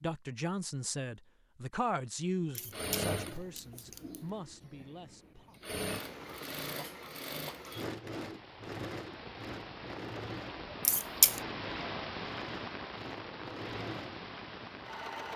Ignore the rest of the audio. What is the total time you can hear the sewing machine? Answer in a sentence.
You can hear the sewing machine for 13 seconds altogether.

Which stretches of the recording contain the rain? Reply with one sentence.
You can hear the rain from 5.8 to 15.3 s.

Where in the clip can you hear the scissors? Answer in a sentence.
You can hear the scissors from 2.5 to 4.2 s and from 10.8 to 11.4 s.